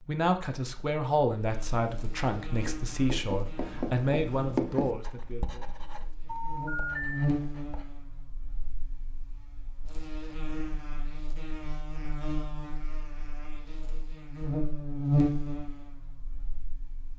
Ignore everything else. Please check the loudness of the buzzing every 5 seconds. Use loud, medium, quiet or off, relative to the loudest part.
quiet, medium, medium, loud.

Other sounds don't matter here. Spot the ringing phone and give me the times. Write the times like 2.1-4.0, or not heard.
6.2-7.3.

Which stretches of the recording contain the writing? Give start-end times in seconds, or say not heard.
2.5-8.1.